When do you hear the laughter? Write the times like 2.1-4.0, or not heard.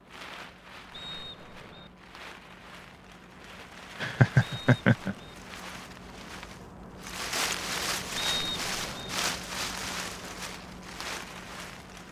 4.0-5.2.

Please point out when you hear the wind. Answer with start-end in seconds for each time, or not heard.
0.0-12.0.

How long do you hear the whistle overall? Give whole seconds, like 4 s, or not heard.
3 s.